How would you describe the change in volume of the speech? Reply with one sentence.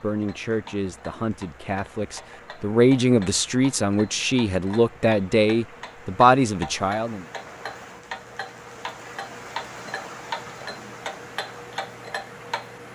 The volume of the speech goes up.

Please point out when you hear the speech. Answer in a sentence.
You can hear the speech from 0.0 to 7.2 s.